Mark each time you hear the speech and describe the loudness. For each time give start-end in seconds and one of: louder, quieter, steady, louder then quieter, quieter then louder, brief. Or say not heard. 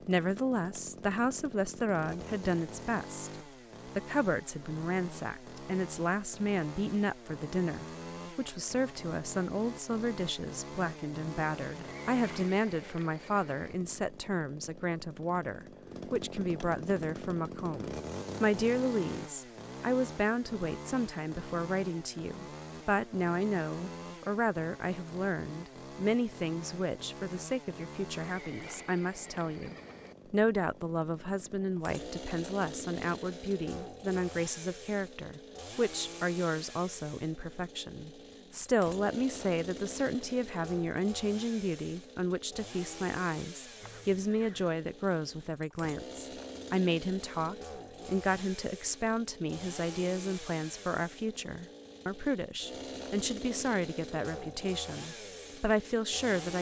0.1-56.5 steady.